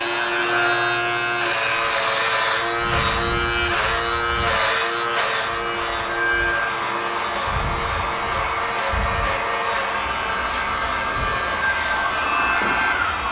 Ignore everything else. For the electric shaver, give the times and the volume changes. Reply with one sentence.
The electric shaver can be heard from 0.0 to 13.2 s, getting quieter.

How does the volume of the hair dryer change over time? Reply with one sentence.
The loudness of the hair dryer goes up.